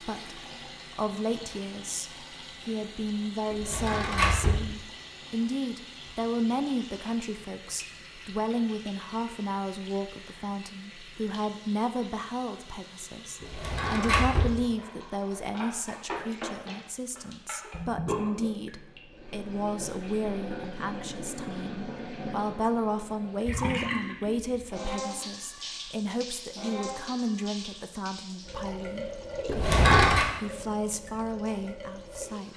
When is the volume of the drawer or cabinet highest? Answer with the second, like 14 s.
30 s.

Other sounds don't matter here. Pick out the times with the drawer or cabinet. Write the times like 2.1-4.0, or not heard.
3.5-4.7, 13.4-14.6, 29.4-30.2.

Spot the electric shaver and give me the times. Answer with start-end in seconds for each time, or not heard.
not heard.